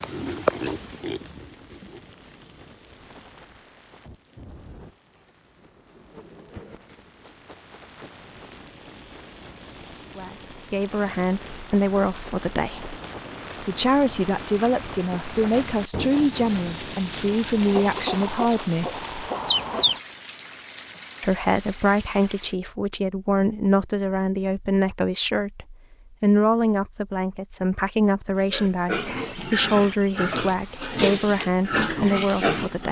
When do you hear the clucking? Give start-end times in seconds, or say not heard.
17.6-20.0.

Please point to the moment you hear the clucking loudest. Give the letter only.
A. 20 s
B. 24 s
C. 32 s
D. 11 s
A.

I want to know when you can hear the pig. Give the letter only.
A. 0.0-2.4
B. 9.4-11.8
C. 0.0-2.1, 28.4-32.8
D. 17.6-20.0
C.